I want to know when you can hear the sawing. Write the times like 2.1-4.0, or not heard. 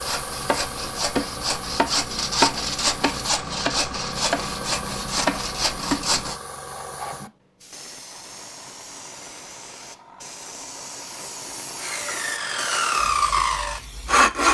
0.0-6.4, 11.8-14.4.